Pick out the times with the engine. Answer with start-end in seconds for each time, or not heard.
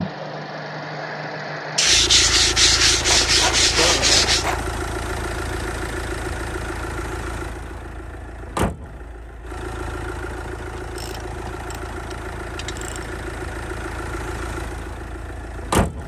0.0-16.0.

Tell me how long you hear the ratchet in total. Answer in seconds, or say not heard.
4 s.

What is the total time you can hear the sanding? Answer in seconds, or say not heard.
3 s.